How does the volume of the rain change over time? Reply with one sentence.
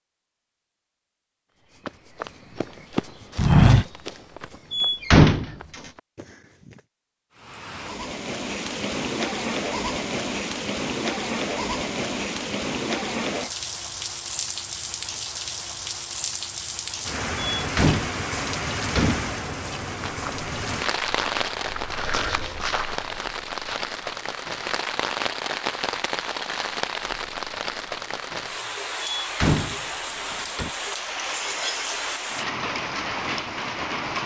The loudness of the rain stays about the same.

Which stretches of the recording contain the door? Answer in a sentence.
The door can be heard from 4.7 to 5.9 s, from 17.6 to 19.4 s and from 29.0 to 30.7 s.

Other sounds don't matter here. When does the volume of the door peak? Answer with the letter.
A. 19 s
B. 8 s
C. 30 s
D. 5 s
D.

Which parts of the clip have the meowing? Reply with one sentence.
You can't hear the meowing here.